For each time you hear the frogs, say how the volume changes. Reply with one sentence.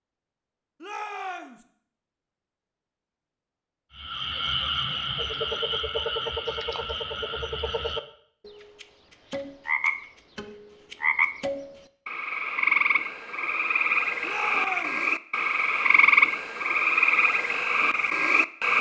You can hear the frogs from 4.0 to 18.7 s, getting louder.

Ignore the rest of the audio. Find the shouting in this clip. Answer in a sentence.
The shouting can be heard from 0.8 to 1.6 s and from 14.2 to 15.1 s.